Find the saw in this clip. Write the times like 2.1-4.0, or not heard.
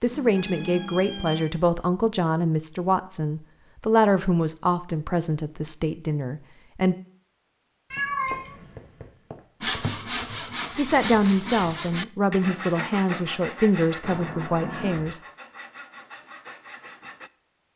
9.6-17.3.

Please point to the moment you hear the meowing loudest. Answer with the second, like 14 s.
8 s.